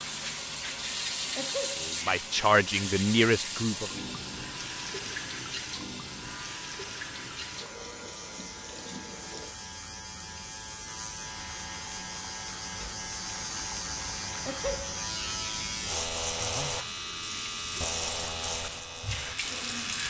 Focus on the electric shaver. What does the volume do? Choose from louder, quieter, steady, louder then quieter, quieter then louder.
louder.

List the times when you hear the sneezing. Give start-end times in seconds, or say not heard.
1.4-1.9, 14.4-15.0.